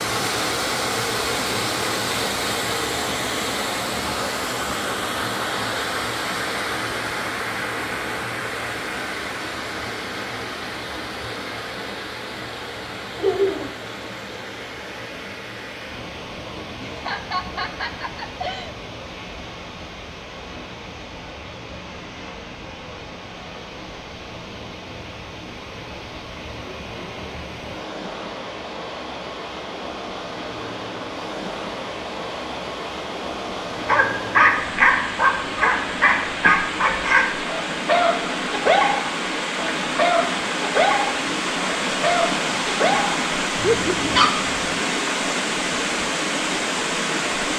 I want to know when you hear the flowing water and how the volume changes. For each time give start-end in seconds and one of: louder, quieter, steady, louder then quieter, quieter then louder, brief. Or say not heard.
0.0-47.5 quieter then louder.